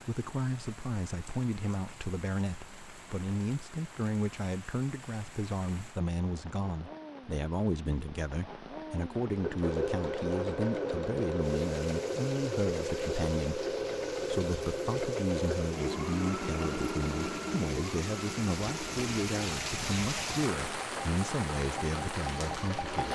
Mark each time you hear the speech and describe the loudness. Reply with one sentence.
You can hear the speech from 0.1 to 23.1 s, at a steady volume.